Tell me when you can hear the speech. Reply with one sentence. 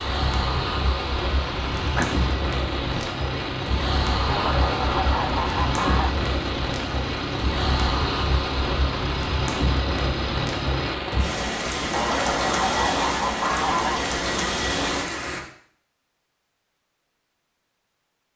The speech can't be heard in this clip.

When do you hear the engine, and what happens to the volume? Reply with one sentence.
The engine can be heard from 0.0 to 10.9 s, at a steady volume.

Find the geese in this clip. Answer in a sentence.
You can hear the geese from 4.2 to 6.1 s and from 11.9 to 14.1 s.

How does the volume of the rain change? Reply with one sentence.
The volume of the rain stays about the same.